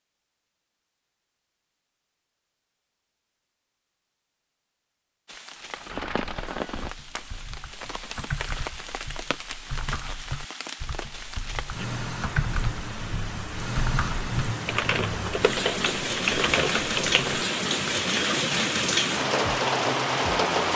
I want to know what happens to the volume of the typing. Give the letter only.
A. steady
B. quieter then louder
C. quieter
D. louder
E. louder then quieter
D.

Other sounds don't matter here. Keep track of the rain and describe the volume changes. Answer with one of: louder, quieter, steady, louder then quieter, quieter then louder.
louder.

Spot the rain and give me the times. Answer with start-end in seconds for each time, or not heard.
5.2-20.7.